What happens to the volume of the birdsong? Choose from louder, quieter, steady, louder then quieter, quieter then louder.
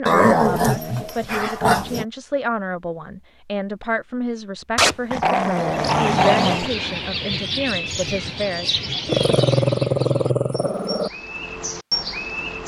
quieter then louder.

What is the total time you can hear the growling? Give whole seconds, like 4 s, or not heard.
6 s.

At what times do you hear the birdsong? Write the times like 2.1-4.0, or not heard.
5.5-12.6.